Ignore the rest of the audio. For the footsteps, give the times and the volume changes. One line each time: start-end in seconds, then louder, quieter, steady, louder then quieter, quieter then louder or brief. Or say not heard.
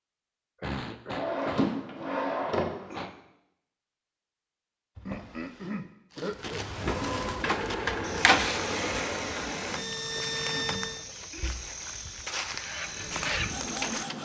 6.1-14.1 louder.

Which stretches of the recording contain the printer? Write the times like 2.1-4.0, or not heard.
6.3-11.1, 12.6-14.2.